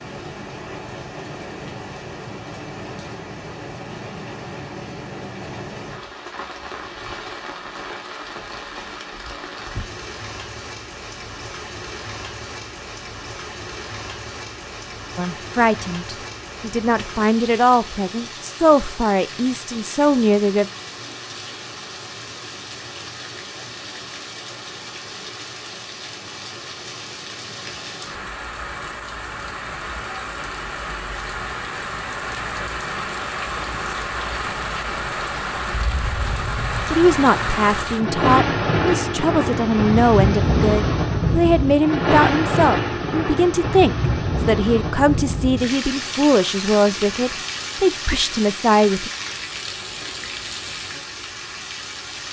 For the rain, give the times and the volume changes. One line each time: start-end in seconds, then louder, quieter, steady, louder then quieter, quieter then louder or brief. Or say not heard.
0.0-52.2 louder.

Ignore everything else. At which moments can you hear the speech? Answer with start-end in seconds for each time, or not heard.
15.2-20.6, 36.9-49.1.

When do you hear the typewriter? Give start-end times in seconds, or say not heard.
not heard.